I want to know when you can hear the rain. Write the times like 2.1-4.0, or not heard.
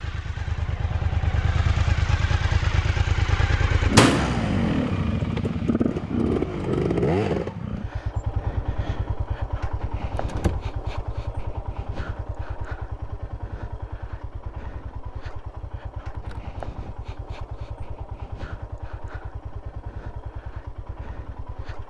not heard.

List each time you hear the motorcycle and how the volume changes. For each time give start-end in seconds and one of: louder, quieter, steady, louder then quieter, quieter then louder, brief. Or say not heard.
0.0-21.8 quieter.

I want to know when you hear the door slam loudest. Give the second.
4 s.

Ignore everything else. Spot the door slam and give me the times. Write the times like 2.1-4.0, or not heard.
4.0-4.4, 10.2-10.7, 16.1-16.6.